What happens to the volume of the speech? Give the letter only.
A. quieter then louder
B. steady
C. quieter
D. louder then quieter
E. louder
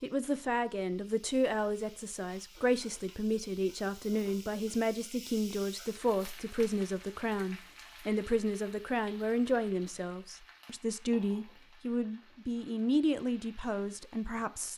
B.